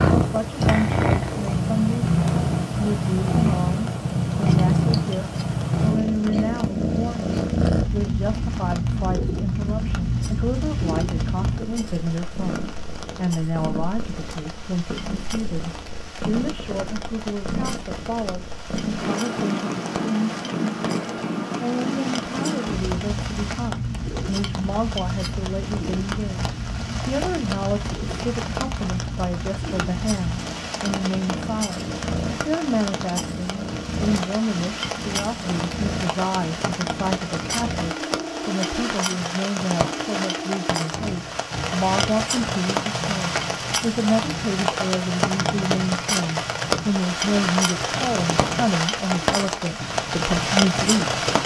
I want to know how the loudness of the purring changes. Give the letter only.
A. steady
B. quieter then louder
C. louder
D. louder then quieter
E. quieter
E.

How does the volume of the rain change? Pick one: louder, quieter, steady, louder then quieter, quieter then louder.
louder.